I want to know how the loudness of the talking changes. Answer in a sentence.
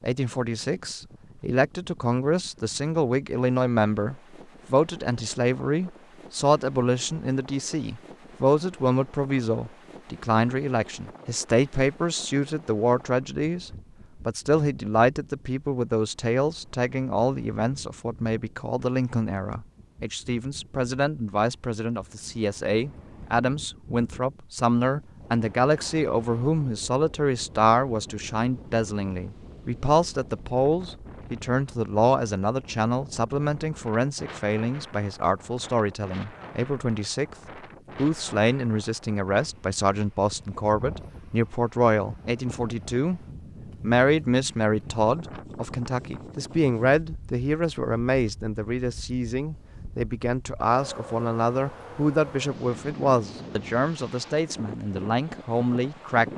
The volume of the talking stays about the same.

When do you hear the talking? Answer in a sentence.
The talking can be heard from 0.0 to 37.4 s, from 38.0 to 43.2 s and from 43.8 to 56.2 s.